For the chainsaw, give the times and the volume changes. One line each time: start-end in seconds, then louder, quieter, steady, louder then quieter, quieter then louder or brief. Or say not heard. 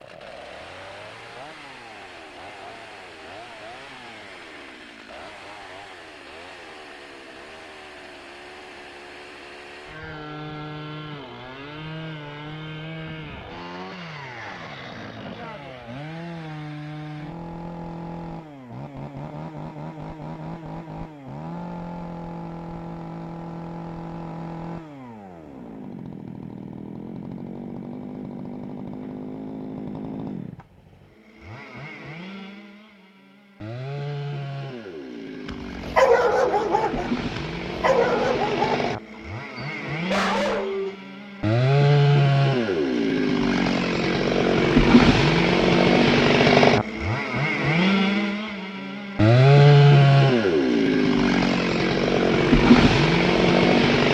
0.0-54.0 louder.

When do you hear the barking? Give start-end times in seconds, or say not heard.
35.5-39.0, 39.5-41.0.